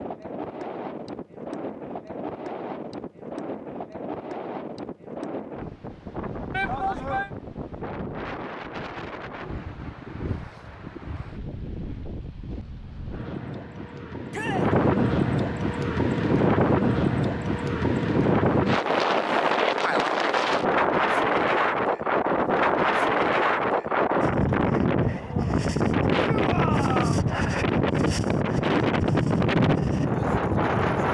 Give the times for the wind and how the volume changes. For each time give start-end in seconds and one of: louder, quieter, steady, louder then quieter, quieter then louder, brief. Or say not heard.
0.0-31.0 louder.